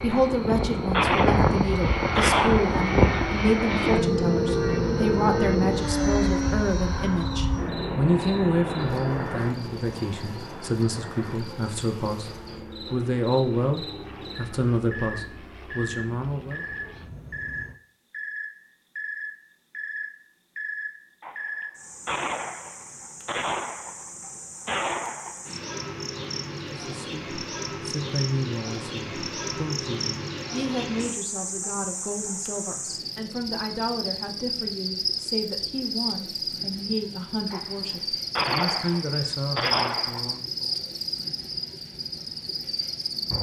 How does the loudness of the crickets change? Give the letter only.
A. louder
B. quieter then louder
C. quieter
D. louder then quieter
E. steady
A.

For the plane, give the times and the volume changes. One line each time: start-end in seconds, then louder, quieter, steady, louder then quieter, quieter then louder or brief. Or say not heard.
0.0-17.8 quieter.